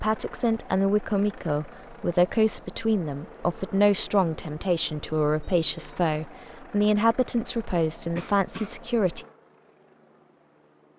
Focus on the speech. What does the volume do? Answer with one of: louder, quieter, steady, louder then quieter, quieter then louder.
steady.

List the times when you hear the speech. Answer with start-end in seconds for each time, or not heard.
0.0-9.2.